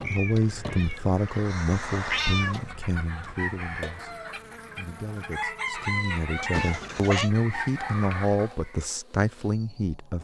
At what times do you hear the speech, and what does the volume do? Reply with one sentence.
The speech can be heard from 0.0 to 10.1 s, getting quieter then louder.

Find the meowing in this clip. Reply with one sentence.
You can hear the meowing from 0.0 to 2.7 s and from 6.5 to 7.3 s.